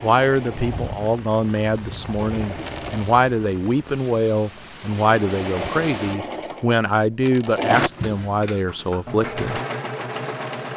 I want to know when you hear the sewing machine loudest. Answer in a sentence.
The loudest moment of the sewing machine is at 8 seconds.